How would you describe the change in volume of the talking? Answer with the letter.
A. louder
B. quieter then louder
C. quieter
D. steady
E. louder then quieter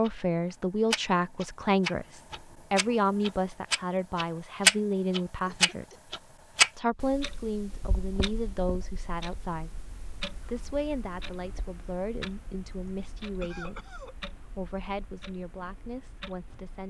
C.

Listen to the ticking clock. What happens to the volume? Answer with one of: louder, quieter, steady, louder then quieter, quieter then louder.
louder then quieter.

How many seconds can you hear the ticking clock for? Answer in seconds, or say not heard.
17 s.